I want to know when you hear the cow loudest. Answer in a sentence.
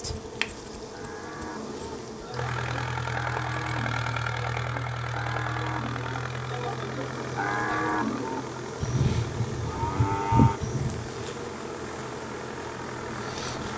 The volume of the cow peaks at 10 seconds.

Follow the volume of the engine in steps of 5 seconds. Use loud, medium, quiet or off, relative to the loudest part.
loud, medium, medium.